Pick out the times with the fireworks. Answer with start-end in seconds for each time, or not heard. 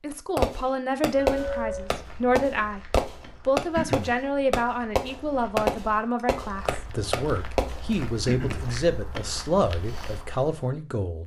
0.3-7.8.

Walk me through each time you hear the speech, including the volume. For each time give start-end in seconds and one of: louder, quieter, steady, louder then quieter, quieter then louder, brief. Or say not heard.
0.0-2.8 brief
3.5-11.2 steady.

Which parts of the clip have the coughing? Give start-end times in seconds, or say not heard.
3.8-4.2, 8.2-8.7.